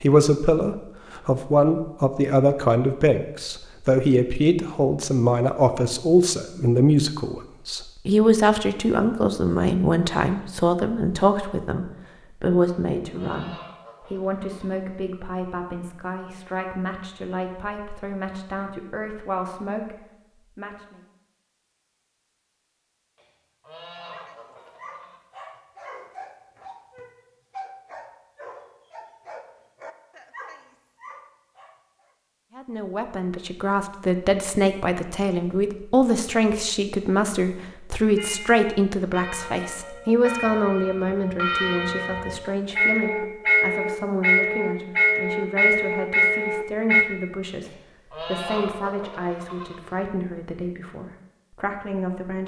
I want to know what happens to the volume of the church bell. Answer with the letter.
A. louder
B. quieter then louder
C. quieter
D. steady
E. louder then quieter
A.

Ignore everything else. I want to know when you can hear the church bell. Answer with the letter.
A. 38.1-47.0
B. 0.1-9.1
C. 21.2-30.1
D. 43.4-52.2
A.